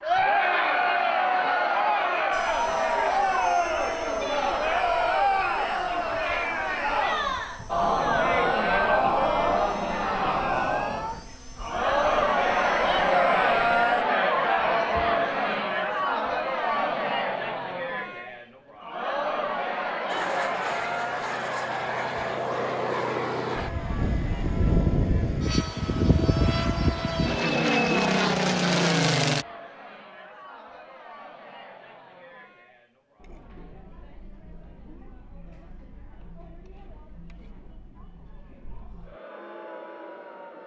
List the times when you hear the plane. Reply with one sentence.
The plane can be heard from 2.3 to 14.1 s and from 20.1 to 29.4 s.